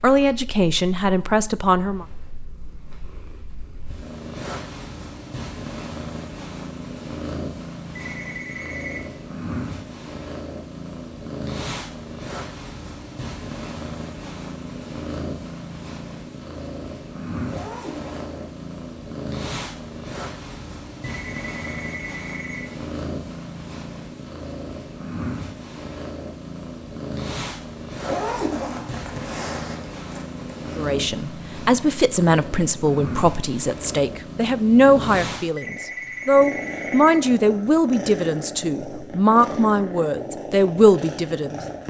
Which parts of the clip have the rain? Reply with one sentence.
The rain can't be heard in this clip.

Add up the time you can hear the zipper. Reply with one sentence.
You can hear the zipper for 4 seconds altogether.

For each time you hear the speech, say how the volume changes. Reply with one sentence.
You can hear the speech briefly from 0.0 to 2.0 s; and from 30.8 to 41.8 s, at a steady volume.